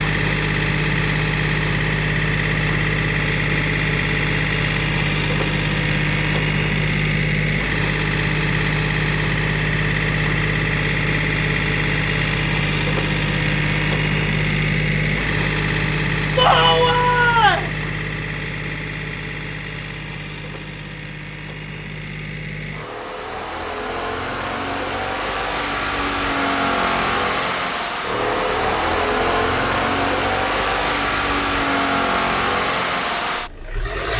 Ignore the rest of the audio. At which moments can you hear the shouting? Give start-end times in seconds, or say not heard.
16.4-17.7.